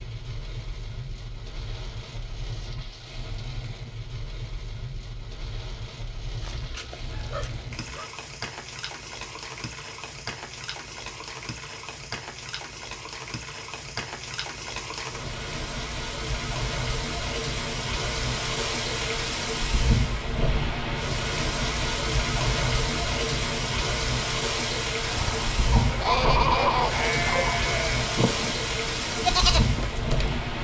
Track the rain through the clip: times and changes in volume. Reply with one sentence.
The rain can be heard from 0.0 to 30.5 s, getting louder.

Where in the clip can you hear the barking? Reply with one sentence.
The barking can be heard from 6.4 to 8.1 s and from 25.7 to 27.6 s.